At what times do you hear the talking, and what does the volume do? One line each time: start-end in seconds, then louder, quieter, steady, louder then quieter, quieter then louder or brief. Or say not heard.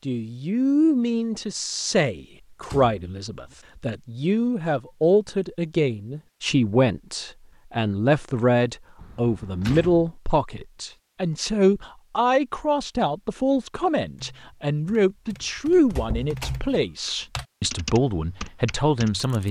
0.1-19.4 steady.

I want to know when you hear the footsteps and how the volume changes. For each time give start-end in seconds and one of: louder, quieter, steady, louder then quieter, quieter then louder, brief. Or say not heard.
not heard.